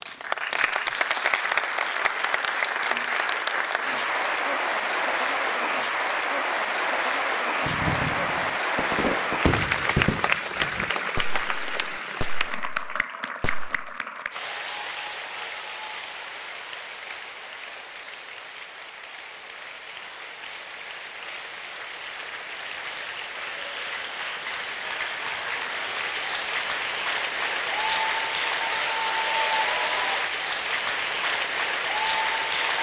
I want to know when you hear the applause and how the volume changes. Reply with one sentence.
The applause can be heard from 0.0 to 32.7 s, getting quieter then louder.